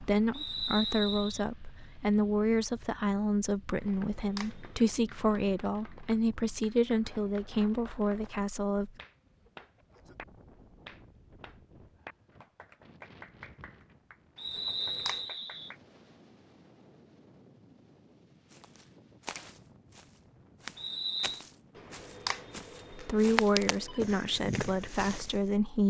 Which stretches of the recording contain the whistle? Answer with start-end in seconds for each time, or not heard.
0.3-1.4, 14.3-15.7, 20.8-21.4.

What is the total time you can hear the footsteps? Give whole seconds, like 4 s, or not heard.
7 s.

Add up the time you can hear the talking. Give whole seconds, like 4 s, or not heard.
12 s.